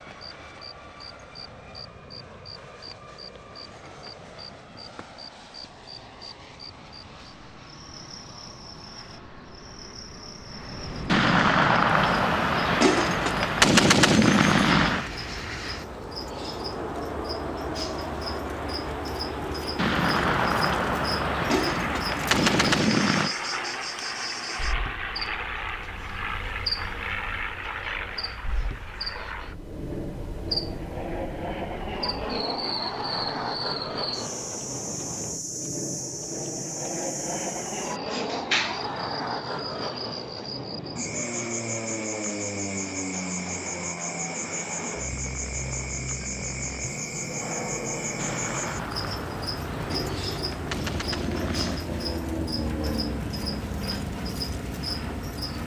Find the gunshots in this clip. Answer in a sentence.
The gunshots can be heard from 11.1 to 15.1 s, from 19.8 to 23.4 s and from 48.1 to 51.9 s.